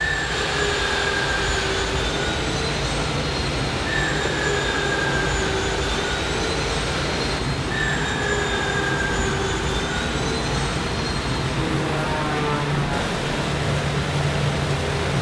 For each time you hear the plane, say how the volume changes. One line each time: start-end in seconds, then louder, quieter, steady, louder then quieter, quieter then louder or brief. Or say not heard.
0.0-15.1 steady.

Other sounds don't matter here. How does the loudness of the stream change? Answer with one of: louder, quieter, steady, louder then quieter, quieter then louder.
steady.